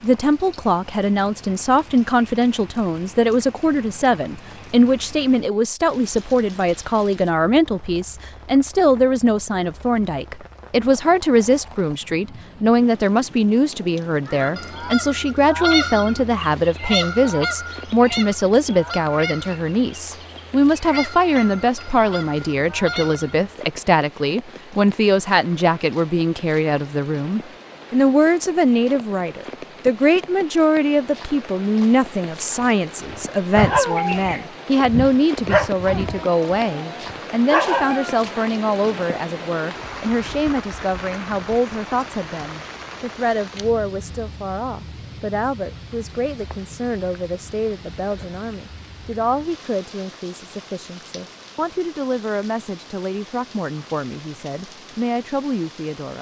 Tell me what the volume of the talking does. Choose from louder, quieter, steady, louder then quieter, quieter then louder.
quieter.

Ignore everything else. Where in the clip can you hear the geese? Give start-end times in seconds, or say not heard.
14.2-23.4.